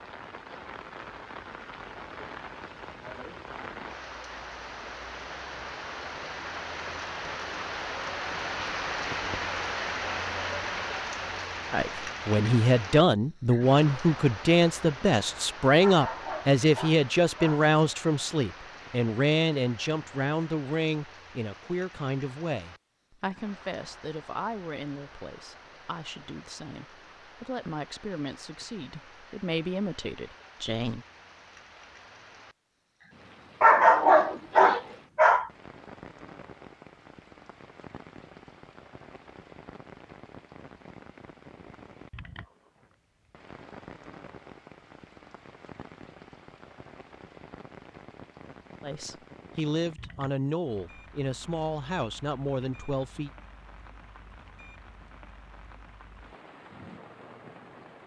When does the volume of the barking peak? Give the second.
34 s.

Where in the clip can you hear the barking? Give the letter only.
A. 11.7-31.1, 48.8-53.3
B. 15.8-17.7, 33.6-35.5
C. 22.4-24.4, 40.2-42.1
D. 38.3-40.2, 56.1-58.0
B.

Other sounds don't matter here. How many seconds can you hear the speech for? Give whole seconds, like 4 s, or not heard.
24 s.